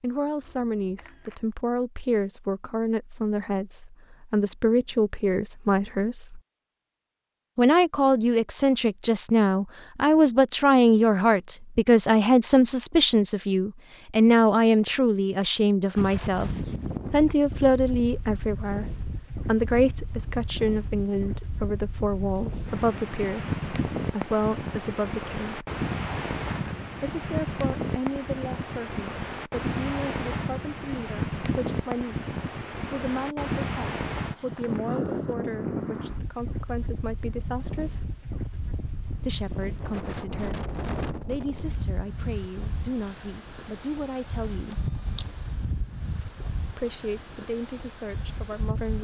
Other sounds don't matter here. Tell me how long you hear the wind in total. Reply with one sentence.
The wind can be heard for 33 seconds in total.